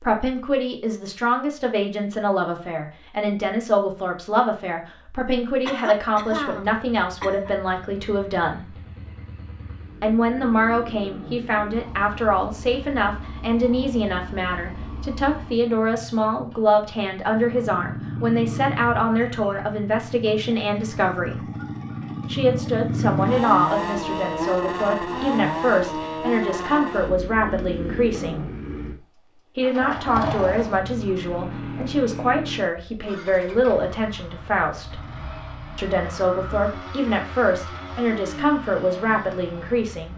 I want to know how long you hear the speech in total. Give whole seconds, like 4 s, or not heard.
36 s.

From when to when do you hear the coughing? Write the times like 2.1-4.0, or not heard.
5.2-7.5.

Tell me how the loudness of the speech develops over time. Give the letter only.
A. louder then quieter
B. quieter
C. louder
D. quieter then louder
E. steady
E.